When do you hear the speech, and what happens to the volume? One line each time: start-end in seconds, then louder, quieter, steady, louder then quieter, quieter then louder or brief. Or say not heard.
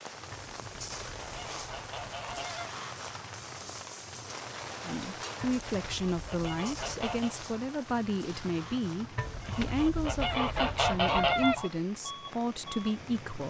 4.8-13.4 steady.